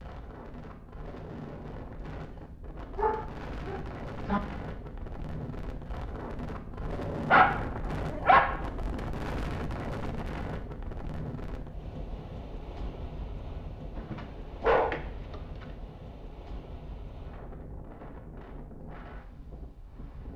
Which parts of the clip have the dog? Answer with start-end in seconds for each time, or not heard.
3.0-4.4, 7.3-8.6, 13.9-15.7.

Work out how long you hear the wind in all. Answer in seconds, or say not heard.
20 s.